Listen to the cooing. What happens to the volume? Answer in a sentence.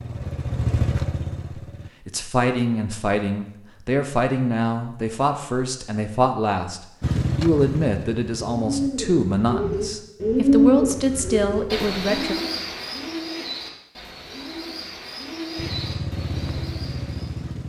The volume of the cooing goes down.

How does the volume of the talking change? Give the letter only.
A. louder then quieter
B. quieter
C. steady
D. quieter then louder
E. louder
C.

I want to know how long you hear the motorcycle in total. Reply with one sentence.
You can hear the motorcycle for 6 seconds altogether.